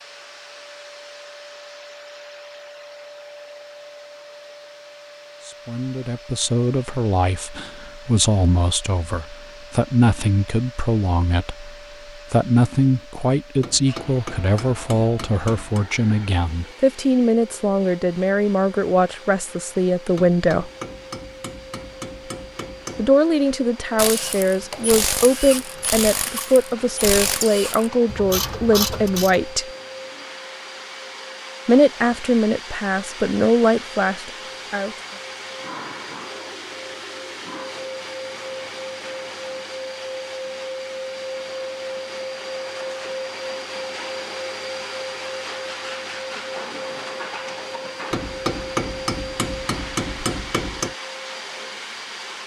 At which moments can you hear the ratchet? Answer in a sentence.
The ratchet can be heard from 23.9 to 29.4 s.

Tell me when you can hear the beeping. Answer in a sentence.
You can't hear the beeping here.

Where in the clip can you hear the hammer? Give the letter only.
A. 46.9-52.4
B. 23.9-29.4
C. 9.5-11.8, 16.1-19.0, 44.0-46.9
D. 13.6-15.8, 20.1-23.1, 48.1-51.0
D.